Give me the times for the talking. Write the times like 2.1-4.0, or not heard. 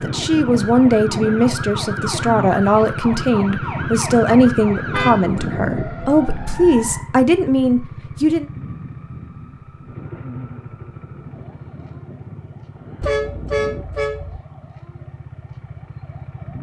0.0-8.4.